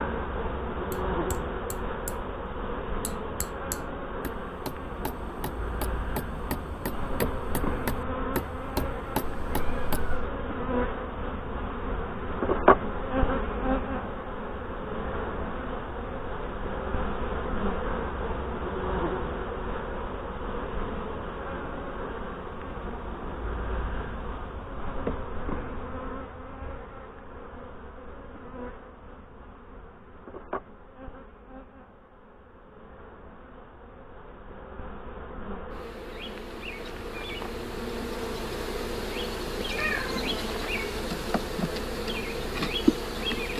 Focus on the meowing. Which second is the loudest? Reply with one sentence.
The loudest moment of the meowing is at 40 seconds.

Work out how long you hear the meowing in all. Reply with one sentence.
You can hear the meowing for 2 seconds altogether.